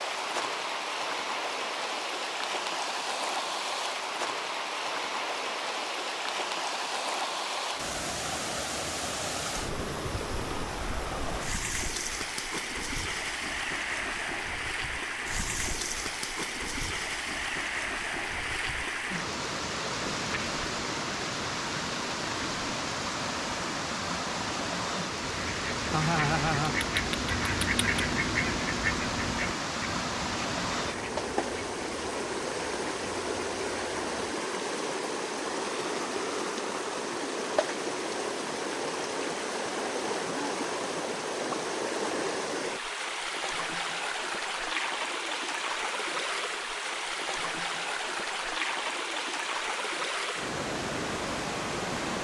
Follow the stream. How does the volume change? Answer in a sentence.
The volume of the stream stays about the same.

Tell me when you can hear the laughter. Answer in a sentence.
You can hear the laughter from 25.9 to 26.8 s.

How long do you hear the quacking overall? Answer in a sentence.
You can hear the quacking for 9 seconds altogether.